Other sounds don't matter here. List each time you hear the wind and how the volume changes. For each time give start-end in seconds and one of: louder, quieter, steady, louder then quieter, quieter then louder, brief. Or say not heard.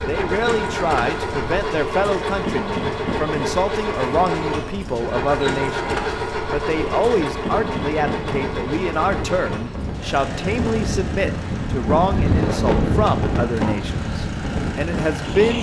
0.0-15.5 louder.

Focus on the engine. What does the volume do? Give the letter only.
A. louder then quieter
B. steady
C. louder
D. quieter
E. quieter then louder
D.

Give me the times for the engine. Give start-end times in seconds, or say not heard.
0.0-15.5.